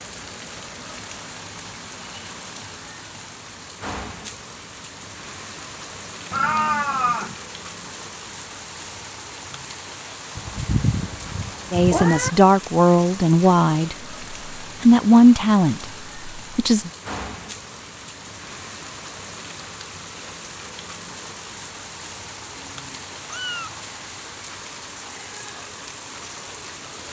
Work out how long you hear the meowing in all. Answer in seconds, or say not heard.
4 s.